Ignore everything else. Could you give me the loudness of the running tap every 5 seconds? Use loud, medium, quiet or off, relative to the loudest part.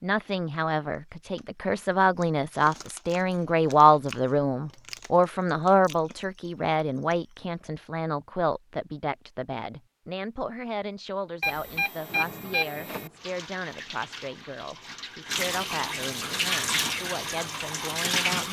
off, off, quiet, loud.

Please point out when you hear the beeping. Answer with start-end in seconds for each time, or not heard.
11.4-13.1.